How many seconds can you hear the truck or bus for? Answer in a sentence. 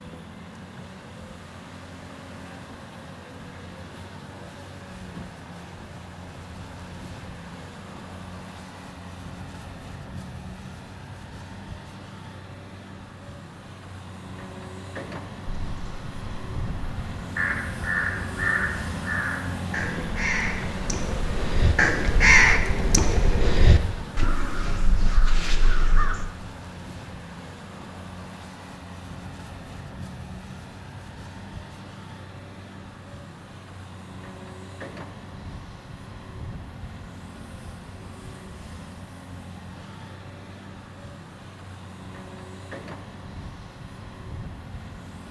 You can hear the truck or bus for 45 seconds altogether.